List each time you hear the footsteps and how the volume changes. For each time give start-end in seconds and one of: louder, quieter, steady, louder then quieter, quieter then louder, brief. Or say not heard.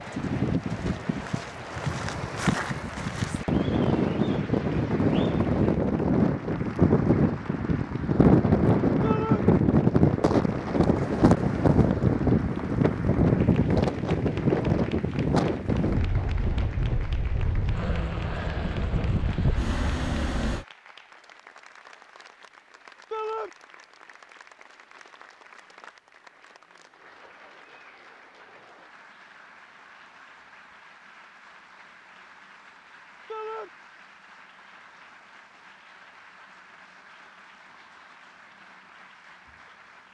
not heard.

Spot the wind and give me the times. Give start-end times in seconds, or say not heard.
0.0-20.6.